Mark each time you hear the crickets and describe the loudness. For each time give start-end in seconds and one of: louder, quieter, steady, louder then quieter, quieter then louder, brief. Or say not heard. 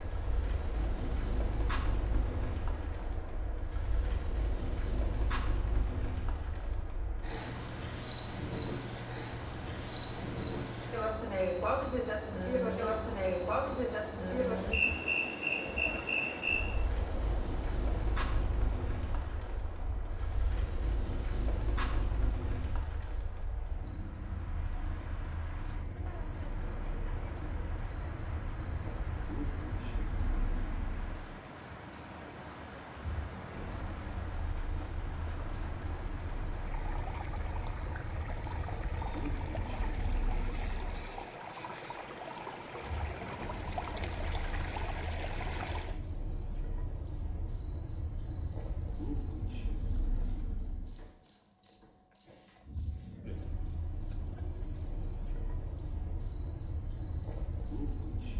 0.0-58.3 steady.